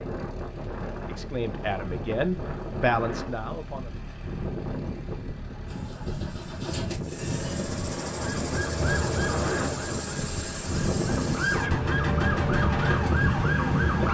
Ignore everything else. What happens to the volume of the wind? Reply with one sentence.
The loudness of the wind goes up.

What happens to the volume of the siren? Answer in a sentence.
The volume of the siren goes down, then up.